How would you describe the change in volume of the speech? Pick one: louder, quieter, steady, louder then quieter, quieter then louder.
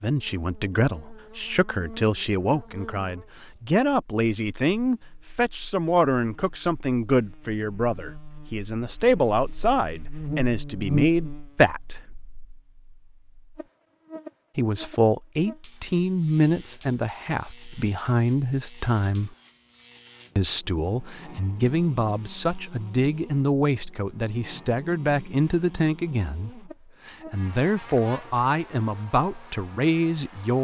steady.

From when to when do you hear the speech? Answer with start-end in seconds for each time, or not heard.
0.0-12.0, 14.6-19.4, 20.4-30.6.